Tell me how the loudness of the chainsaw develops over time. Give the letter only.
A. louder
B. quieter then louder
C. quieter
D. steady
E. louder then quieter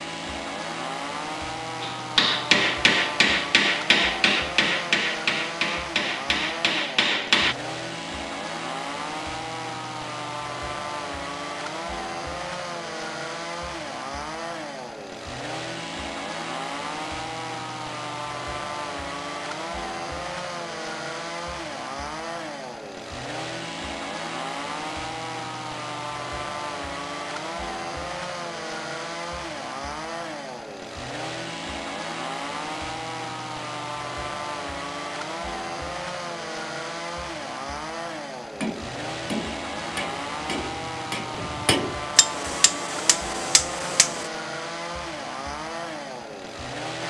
D.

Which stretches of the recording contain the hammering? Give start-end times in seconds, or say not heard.
1.8-7.5, 38.5-44.3.